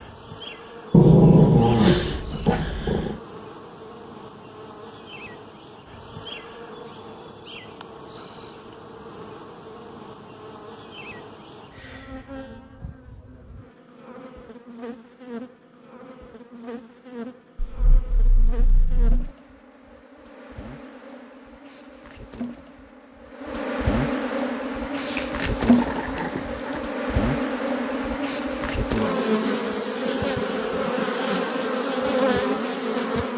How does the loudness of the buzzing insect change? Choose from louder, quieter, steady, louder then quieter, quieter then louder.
louder.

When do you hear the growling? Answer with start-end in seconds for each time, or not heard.
0.9-3.1, 17.6-19.3, 24.9-26.8.